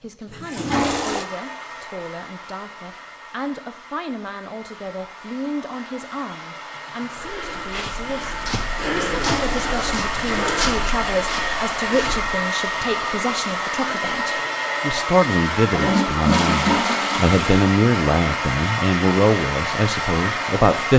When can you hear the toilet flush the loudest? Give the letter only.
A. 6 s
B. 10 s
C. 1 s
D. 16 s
D.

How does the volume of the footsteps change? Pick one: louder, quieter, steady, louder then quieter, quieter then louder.
louder then quieter.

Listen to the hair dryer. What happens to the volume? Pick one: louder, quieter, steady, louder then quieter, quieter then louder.
louder.